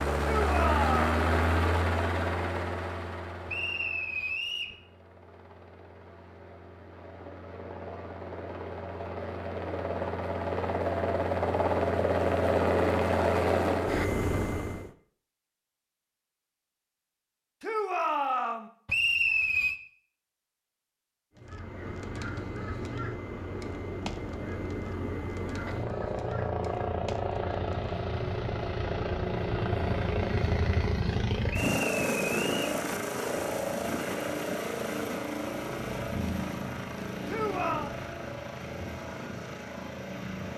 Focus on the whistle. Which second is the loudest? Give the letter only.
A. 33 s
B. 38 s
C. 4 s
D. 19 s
D.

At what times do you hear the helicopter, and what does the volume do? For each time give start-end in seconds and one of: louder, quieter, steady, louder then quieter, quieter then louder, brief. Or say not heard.
0.0-14.9 quieter then louder
21.4-40.5 louder then quieter.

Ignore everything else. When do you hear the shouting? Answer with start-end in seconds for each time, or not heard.
0.2-1.1, 17.6-18.7, 37.2-37.9.